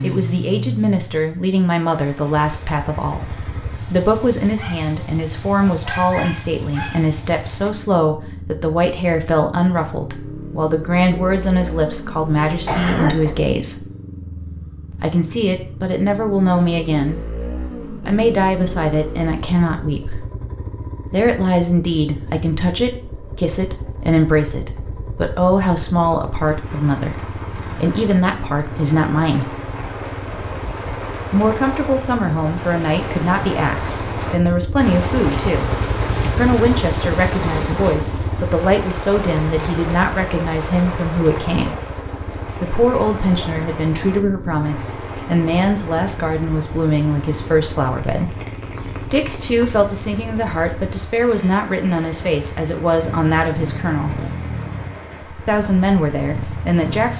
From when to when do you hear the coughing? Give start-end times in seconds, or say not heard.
12.7-13.3.